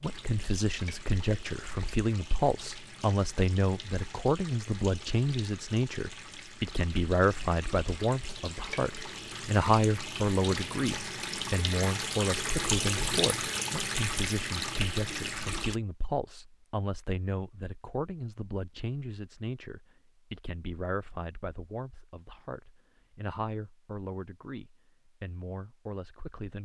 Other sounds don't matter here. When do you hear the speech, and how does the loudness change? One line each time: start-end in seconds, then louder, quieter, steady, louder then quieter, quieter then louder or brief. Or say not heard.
0.0-26.6 quieter.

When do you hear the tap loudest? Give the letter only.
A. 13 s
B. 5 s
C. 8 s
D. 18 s
A.